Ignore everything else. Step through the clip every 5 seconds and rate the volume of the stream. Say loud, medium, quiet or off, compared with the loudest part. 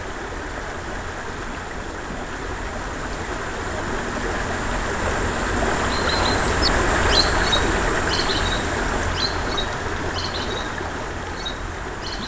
medium, loud, medium.